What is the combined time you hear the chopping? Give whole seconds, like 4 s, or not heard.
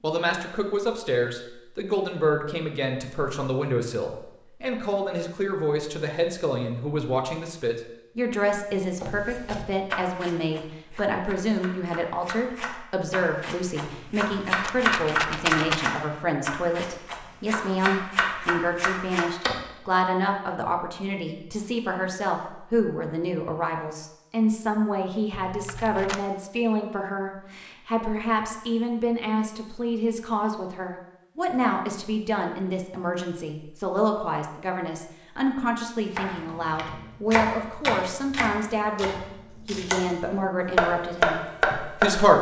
16 s.